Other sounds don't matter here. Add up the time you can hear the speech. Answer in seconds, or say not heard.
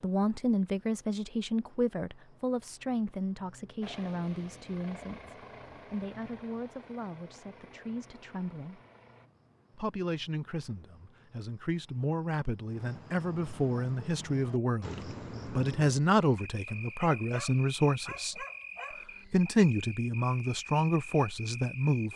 20 s.